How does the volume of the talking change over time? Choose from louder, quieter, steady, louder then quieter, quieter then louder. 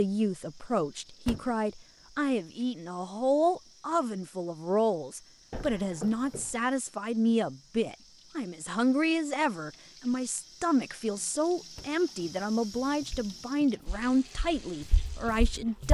steady.